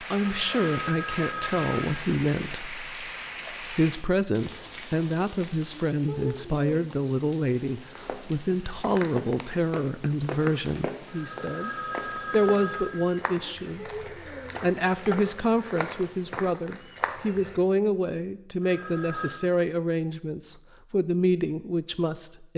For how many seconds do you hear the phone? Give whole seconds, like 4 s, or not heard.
5 s.